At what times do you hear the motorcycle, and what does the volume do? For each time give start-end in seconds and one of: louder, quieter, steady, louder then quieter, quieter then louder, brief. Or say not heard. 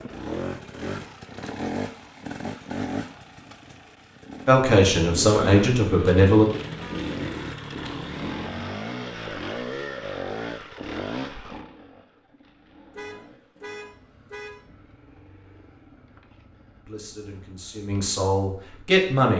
0.0-19.1 quieter.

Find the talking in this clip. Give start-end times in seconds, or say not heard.
4.5-6.5, 16.9-19.3.